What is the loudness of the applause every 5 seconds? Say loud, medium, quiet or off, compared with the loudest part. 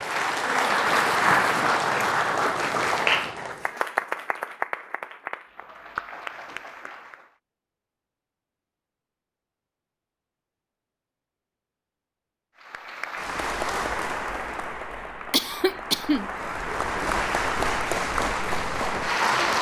loud, quiet, medium, loud.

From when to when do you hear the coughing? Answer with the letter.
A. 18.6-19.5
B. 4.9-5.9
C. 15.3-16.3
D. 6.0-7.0
C.